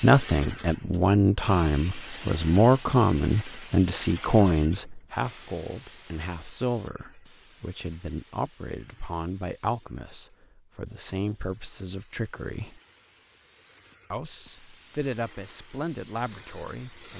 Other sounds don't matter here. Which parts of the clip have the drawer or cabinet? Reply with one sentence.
The drawer or cabinet can't be heard in this clip.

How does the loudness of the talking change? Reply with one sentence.
The loudness of the talking goes down.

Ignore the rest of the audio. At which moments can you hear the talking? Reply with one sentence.
The talking can be heard from 0.0 to 12.8 s and from 14.1 to 17.1 s.